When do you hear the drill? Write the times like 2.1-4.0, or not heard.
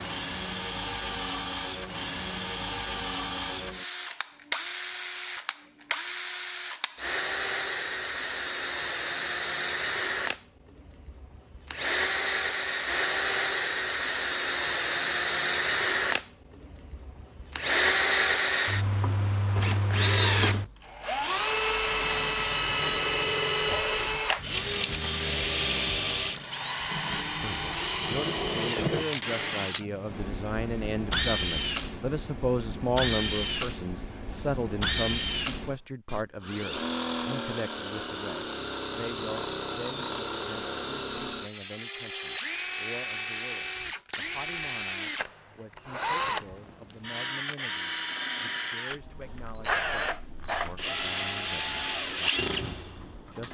0.0-53.4.